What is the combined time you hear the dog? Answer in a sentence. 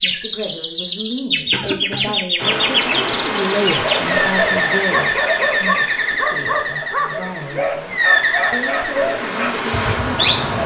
The dog can be heard for 6 seconds in total.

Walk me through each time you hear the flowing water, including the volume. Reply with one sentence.
You can hear the flowing water from 2.4 to 10.6 s, getting quieter then louder.